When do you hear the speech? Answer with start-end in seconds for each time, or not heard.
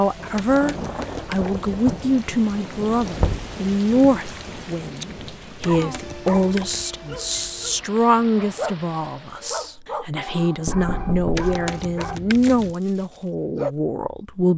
0.0-14.5.